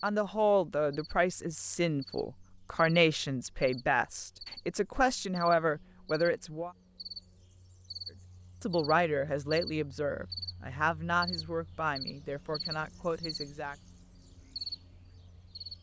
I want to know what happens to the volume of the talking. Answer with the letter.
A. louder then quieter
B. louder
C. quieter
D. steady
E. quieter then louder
C.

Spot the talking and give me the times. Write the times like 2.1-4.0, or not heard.
0.0-6.7, 8.6-13.8.